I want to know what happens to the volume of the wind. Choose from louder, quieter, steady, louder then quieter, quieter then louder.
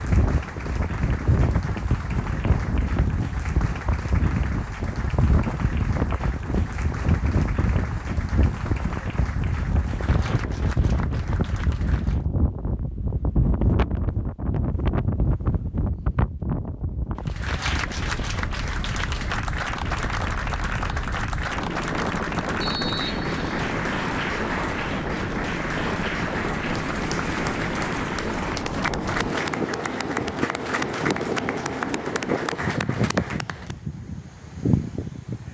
steady.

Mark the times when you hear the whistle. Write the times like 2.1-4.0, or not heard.
22.6-23.7.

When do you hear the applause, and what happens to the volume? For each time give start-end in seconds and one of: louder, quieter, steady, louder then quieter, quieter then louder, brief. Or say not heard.
0.0-12.2 steady
17.1-33.8 steady.